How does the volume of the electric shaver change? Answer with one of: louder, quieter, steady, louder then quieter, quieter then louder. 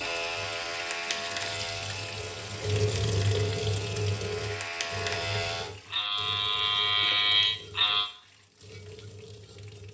quieter then louder.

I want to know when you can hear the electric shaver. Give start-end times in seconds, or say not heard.
0.0-8.1.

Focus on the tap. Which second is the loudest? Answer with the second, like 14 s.
3 s.